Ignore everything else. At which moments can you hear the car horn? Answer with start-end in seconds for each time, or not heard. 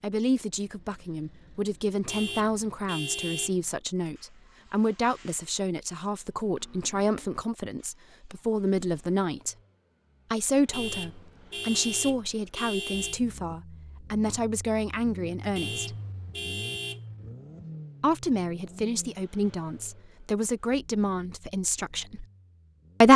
2.0-3.5, 10.7-13.2, 15.6-17.0.